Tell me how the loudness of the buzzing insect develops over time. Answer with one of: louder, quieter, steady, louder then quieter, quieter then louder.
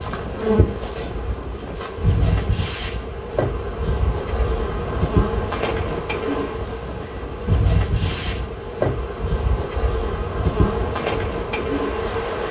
steady.